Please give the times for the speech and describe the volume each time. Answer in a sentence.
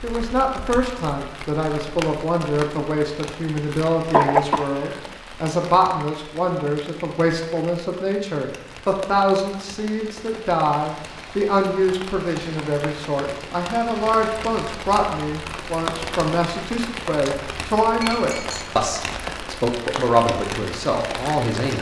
The speech can be heard from 0.0 to 21.7 s, at a steady volume.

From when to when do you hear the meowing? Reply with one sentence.
You can't hear the meowing here.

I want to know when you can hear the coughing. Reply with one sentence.
You can hear the coughing from 4.1 to 5.0 s.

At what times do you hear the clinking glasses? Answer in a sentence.
You can hear the clinking glasses from 18.0 to 18.6 s.